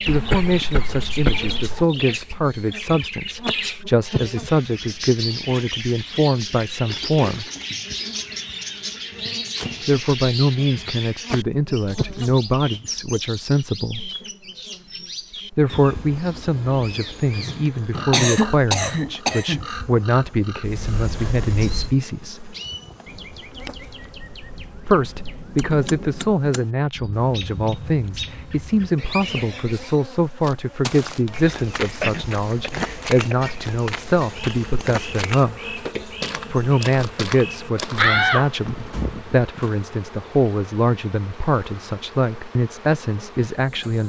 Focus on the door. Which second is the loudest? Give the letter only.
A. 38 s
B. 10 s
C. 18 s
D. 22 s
A.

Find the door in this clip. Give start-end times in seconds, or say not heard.
8.9-9.9, 20.6-21.9, 38.0-39.1.